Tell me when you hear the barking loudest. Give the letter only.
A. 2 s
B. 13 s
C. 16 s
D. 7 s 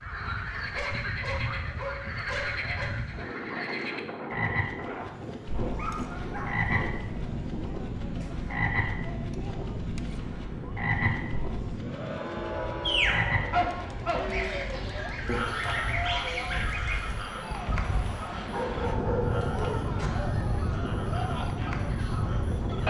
B.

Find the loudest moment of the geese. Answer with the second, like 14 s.
16 s.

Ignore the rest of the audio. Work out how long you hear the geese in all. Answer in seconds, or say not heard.
3 s.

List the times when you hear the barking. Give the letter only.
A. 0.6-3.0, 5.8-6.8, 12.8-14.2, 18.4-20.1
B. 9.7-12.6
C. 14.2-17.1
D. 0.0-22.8
A.